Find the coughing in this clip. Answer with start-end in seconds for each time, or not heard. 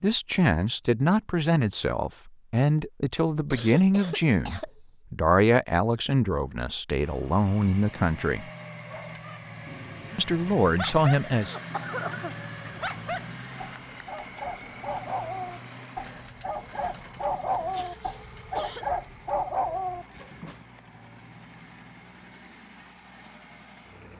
3.5-4.7, 11.3-12.8, 17.7-18.9.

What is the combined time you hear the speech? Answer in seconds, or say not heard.
10 s.